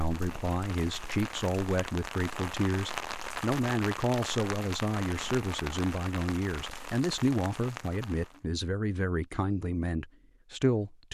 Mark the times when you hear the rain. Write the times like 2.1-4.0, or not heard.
0.0-8.4.